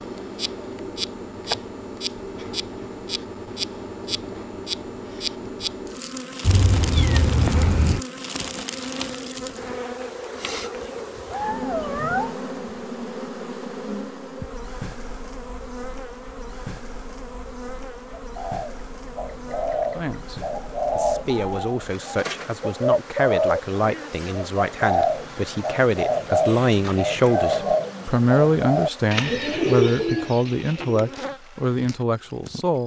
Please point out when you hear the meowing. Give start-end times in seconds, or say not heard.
6.4-8.0, 11.3-12.3, 26.1-27.9.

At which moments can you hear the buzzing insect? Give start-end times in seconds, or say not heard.
0.0-32.8.